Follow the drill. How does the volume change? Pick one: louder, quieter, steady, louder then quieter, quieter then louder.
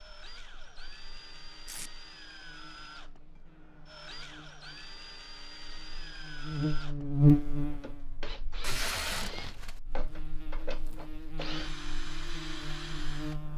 louder.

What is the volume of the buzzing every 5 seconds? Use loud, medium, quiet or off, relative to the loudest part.
quiet, loud, quiet.